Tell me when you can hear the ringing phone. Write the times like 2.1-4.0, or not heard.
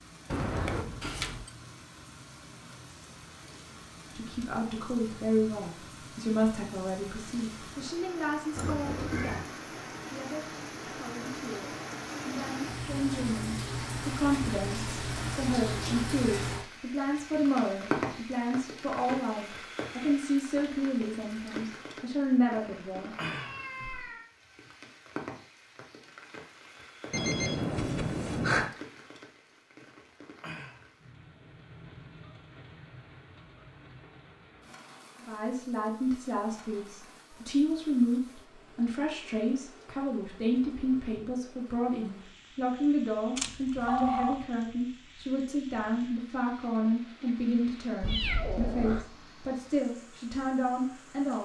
0.2-1.5, 27.1-28.7, 43.4-44.5.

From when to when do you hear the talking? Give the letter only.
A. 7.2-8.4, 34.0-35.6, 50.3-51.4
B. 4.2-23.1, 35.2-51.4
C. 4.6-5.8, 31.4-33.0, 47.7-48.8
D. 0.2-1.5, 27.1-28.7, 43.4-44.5
B.